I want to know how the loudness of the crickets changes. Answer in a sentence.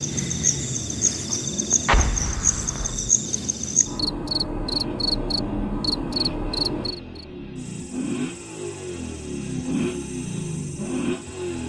The volume of the crickets goes down.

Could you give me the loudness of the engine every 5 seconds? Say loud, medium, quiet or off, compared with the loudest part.
medium, loud, loud.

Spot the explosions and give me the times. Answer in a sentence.
The explosions can be heard from 1.9 to 3.1 s.